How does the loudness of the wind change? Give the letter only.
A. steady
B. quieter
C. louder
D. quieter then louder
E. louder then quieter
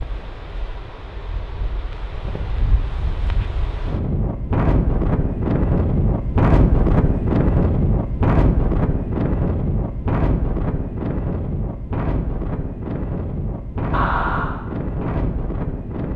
E.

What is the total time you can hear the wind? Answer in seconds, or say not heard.
16 s.